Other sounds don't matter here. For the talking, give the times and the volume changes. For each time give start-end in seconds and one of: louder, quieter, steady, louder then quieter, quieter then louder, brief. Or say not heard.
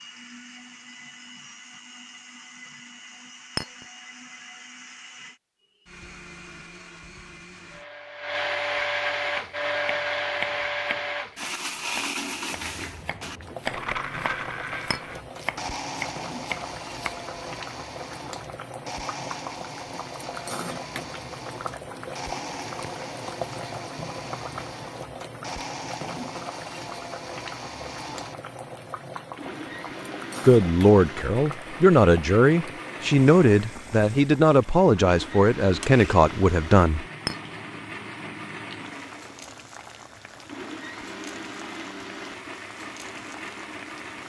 30.4-37.0 steady.